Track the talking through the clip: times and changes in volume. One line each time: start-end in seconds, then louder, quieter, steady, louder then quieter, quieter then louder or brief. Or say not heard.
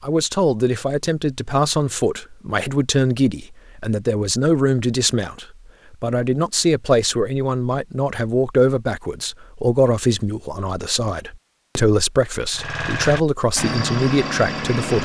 0.0-15.0 steady.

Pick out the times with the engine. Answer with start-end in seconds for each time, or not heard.
12.5-15.0.